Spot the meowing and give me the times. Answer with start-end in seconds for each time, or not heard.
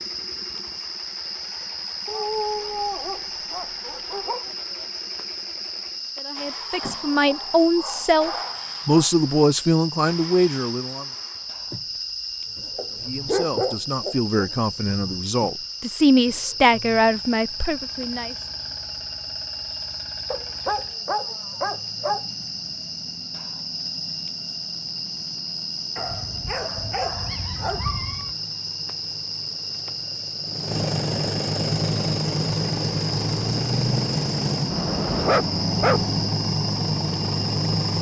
not heard.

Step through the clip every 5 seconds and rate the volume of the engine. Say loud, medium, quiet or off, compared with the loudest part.
quiet, quiet, quiet, quiet, quiet, quiet, loud, loud.